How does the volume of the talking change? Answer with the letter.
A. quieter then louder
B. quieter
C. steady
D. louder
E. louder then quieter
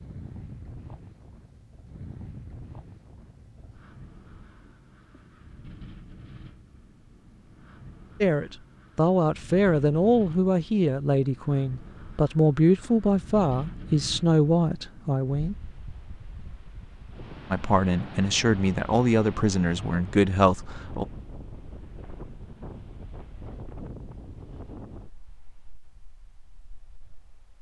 C.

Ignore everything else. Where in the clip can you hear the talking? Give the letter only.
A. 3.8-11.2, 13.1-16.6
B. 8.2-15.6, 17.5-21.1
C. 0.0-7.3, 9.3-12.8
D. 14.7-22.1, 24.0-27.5
B.